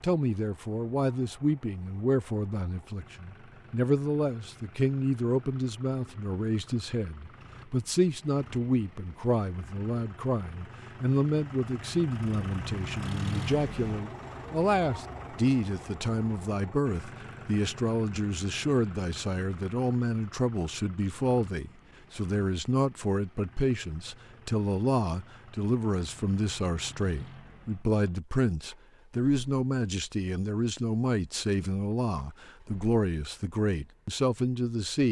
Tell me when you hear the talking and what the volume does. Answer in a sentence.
The talking can be heard from 0.0 to 35.0 s, at a steady volume.